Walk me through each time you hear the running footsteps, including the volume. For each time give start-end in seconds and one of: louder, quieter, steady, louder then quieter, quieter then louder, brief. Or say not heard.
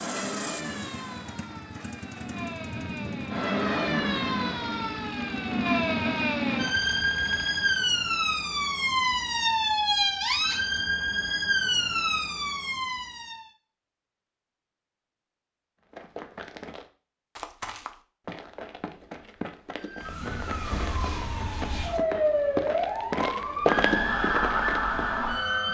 15.9-25.1 louder.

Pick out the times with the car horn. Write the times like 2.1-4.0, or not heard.
not heard.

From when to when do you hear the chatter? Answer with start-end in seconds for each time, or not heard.
not heard.